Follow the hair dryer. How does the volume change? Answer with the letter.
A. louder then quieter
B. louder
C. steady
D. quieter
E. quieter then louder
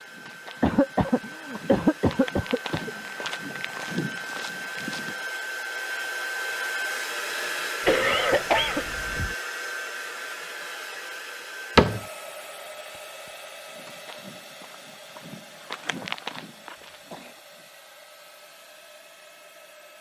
A.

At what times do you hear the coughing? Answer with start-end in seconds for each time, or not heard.
0.6-2.9, 7.8-9.3, 16.6-17.4.